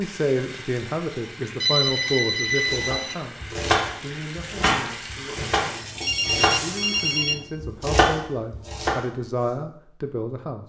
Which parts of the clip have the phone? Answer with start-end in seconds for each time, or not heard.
1.6-3.1, 5.7-7.5.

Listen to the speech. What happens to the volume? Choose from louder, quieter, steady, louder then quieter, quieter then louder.
quieter then louder.